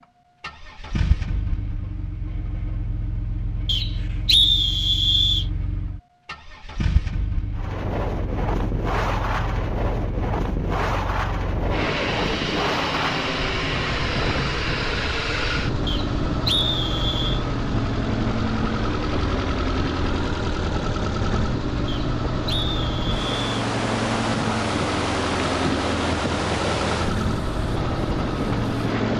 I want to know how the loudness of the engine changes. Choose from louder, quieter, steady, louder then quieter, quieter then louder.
louder.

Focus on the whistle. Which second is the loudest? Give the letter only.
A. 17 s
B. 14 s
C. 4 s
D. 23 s
C.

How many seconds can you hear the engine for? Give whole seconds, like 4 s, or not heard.
29 s.